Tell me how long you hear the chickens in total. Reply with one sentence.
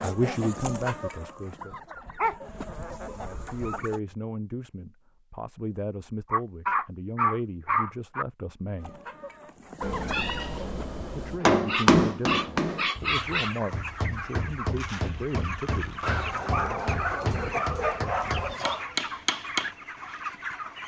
The chickens can be heard for 14 seconds in total.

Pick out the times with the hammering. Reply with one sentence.
The hammering can be heard from 11.4 to 19.7 s.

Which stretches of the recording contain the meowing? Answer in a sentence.
The meowing can be heard from 9.8 to 11.4 s.